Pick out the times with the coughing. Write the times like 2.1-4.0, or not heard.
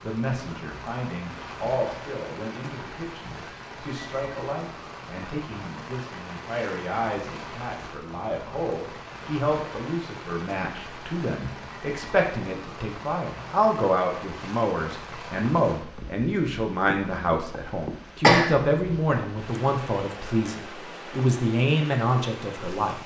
18.2-19.0.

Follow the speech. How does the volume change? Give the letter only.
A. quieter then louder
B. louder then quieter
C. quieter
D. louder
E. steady
D.